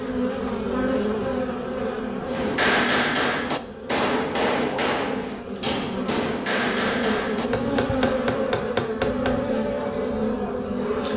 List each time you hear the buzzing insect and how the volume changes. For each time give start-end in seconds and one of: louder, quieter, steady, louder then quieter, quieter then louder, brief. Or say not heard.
0.0-11.1 quieter then louder.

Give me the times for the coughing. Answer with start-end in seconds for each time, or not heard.
not heard.